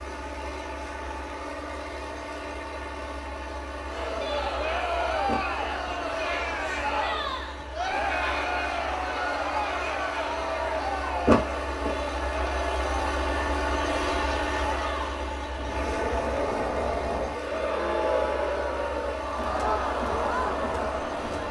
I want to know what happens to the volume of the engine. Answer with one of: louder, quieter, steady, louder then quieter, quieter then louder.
louder then quieter.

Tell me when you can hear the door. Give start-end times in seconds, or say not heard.
5.2-6.0, 11.2-11.9.